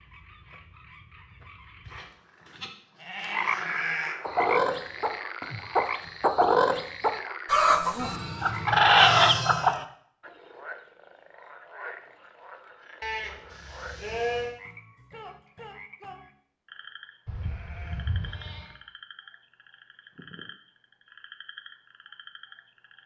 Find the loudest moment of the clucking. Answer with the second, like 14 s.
9 s.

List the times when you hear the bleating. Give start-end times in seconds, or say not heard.
1.9-4.2, 8.0-9.8, 13.0-14.6, 17.2-18.8.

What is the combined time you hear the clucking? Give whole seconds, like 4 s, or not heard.
6 s.